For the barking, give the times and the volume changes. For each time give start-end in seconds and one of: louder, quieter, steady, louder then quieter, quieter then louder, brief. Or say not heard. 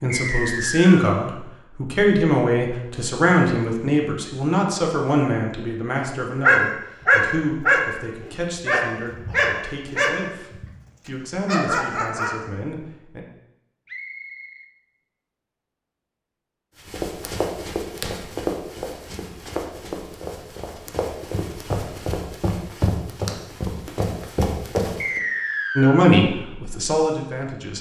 6.4-12.4 quieter.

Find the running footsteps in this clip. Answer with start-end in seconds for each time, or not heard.
16.9-25.2.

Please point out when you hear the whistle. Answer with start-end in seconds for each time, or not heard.
0.1-1.0, 13.8-14.7, 25.0-26.1.